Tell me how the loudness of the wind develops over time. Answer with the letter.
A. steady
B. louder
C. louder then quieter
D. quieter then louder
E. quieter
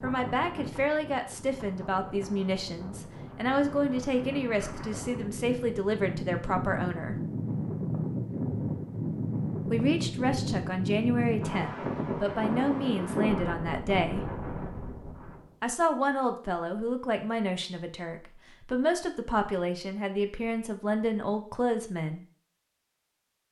B.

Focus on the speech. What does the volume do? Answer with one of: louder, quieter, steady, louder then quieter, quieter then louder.
steady.